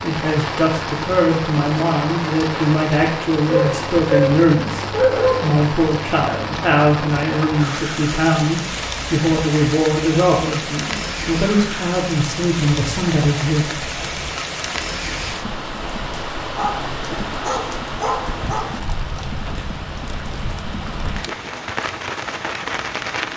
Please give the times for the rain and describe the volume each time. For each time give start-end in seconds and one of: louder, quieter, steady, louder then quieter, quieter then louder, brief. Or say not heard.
0.0-23.3 steady.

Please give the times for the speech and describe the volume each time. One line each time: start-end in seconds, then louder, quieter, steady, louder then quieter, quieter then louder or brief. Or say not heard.
0.0-13.9 steady.